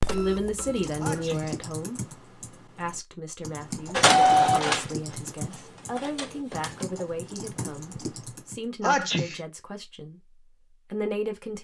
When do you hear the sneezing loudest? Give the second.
9 s.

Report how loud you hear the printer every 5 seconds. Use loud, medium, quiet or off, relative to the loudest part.
loud, quiet, off.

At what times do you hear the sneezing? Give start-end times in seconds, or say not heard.
1.0-1.6, 8.8-9.4.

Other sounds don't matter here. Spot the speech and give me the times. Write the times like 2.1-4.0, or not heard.
0.0-11.6.